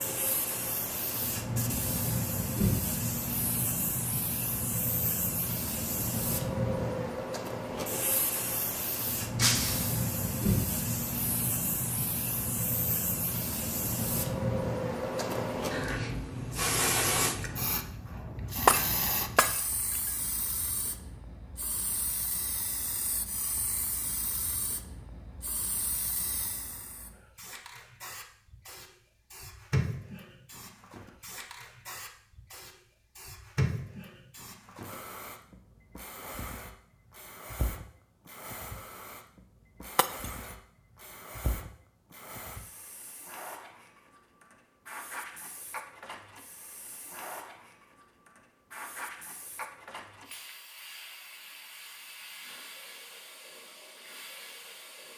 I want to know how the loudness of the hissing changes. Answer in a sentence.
The loudness of the hissing goes down.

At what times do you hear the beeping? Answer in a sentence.
You can't hear the beeping here.